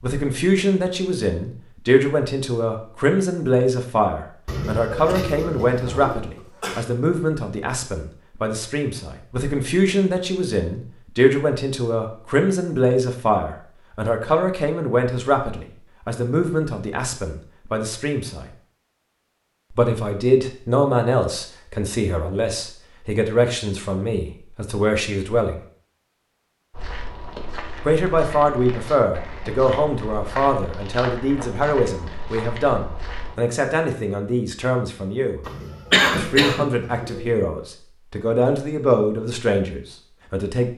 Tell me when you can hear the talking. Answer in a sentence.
The talking can be heard from 0.0 to 18.4 s, from 19.7 to 25.6 s, from 27.9 to 35.5 s and from 36.1 to 40.7 s.